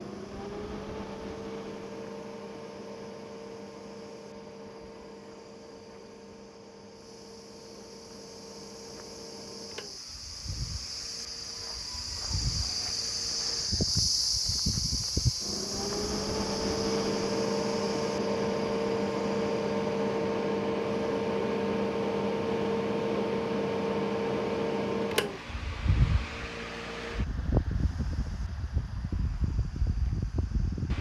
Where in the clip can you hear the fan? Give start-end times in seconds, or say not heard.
0.0-30.9.